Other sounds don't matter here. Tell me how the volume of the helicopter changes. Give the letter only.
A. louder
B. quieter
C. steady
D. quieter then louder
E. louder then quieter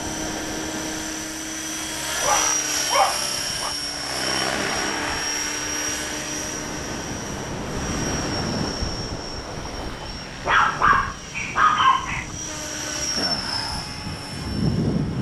D.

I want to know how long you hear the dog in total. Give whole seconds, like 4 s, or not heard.
4 s.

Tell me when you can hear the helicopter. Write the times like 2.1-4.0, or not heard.
0.0-15.1.